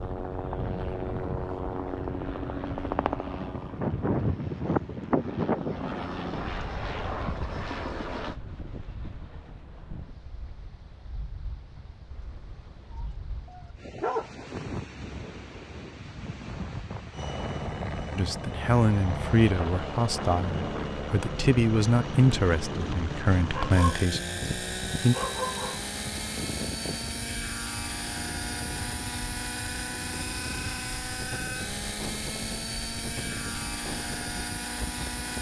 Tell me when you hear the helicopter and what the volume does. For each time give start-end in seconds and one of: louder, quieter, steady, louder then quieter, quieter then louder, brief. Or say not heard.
0.0-8.3 quieter then louder
17.1-35.3 steady.